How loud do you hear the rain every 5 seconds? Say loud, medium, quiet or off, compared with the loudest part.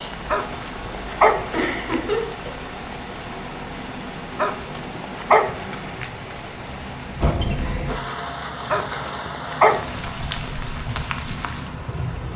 medium, loud, loud.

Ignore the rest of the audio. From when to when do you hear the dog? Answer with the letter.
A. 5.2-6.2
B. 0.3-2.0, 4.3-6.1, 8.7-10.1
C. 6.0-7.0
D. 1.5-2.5
B.